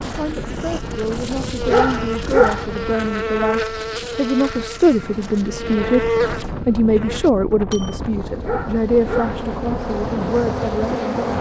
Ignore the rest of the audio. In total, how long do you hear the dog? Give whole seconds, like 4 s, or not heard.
2 s.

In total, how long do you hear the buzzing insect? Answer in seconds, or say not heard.
11 s.